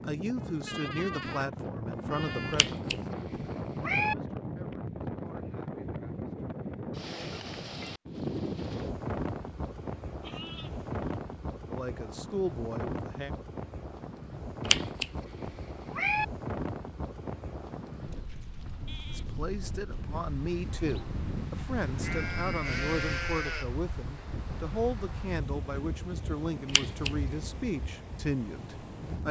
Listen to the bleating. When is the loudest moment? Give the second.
23 s.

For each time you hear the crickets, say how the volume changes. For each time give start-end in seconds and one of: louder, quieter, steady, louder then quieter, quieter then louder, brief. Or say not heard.
not heard.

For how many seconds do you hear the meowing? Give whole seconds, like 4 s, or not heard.
4 s.